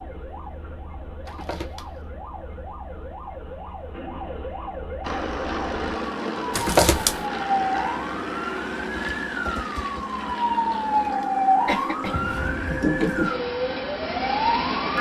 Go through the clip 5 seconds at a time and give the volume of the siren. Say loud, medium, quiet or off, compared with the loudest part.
quiet, medium, loud.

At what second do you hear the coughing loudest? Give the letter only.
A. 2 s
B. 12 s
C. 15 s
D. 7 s
D.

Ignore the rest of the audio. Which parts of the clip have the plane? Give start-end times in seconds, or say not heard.
5.0-14.9.